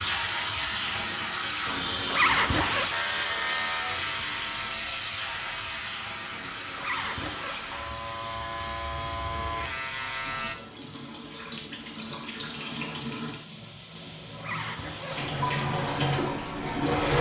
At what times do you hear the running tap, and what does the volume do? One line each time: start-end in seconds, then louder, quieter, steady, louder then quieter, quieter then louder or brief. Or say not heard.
0.0-17.1 quieter then louder.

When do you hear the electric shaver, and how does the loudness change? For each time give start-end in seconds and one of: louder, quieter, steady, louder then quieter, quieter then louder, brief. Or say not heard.
2.9-10.6 quieter then louder.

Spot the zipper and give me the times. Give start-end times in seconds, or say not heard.
1.6-3.0, 6.3-7.8, 13.9-15.3.